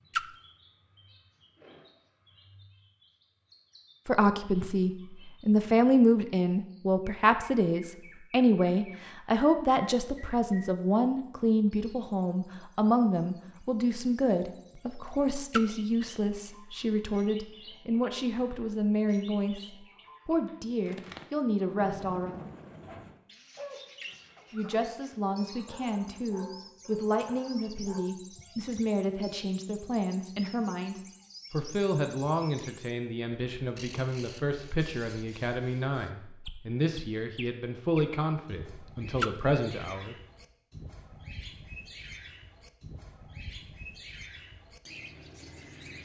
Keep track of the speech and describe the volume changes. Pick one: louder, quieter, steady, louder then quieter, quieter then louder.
quieter.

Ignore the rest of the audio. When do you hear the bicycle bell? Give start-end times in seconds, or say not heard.
not heard.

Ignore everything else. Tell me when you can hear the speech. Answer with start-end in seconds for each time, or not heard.
4.0-22.4, 24.5-40.1.